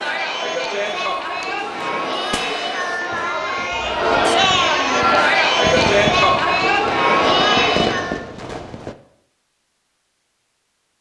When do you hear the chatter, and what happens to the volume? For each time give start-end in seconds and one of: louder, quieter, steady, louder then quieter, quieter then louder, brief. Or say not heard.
0.0-8.2 louder.